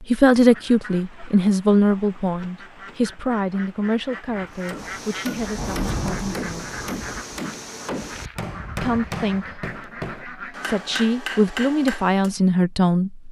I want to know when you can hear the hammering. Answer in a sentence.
You can hear the hammering from 4.5 to 12.3 s.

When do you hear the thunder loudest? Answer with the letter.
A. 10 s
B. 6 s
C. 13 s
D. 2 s
B.